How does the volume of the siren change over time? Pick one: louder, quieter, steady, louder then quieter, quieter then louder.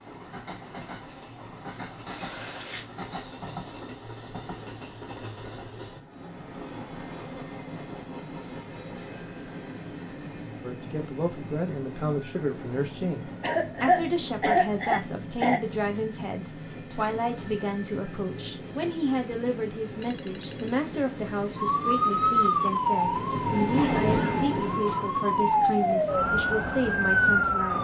quieter then louder.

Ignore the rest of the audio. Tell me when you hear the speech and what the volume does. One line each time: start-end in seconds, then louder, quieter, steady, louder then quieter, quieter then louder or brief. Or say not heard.
10.6-27.7 steady.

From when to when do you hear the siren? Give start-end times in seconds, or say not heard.
21.6-27.7.